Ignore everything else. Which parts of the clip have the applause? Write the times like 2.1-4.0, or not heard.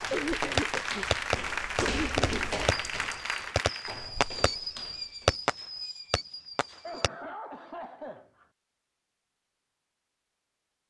0.0-4.1.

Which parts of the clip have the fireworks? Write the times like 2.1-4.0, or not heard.
0.4-7.1.